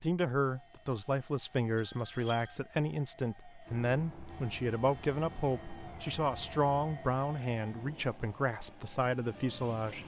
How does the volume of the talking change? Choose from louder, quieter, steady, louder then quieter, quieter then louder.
steady.